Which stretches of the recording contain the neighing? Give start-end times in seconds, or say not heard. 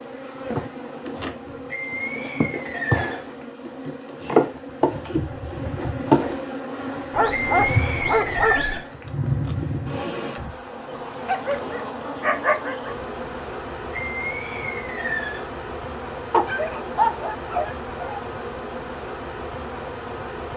1.7-3.5, 7.3-9.1, 13.9-15.4.